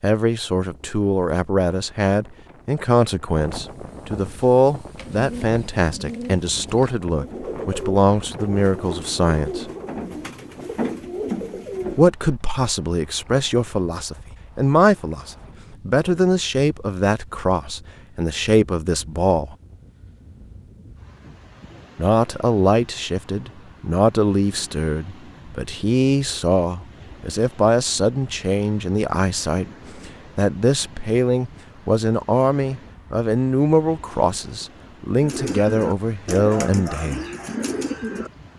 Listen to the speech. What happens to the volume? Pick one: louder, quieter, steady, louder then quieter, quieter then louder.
steady.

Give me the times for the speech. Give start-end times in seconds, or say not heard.
0.0-9.7, 11.9-19.6, 21.9-37.2.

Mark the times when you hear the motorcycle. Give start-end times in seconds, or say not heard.
not heard.